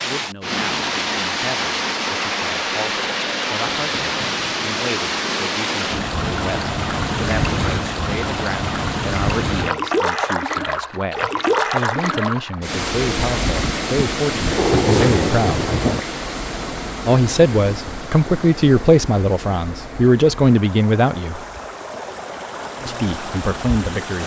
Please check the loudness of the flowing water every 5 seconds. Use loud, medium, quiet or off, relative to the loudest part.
loud, loud, loud, medium, medium.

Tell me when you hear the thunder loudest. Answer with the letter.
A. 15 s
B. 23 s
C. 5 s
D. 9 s
A.